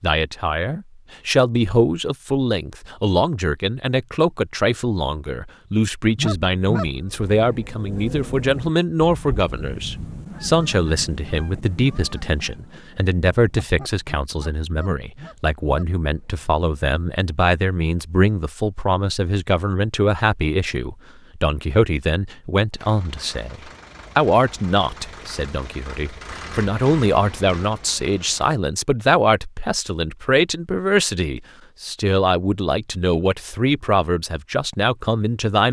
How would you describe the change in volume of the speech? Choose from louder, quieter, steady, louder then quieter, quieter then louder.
steady.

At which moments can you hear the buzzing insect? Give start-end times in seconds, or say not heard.
not heard.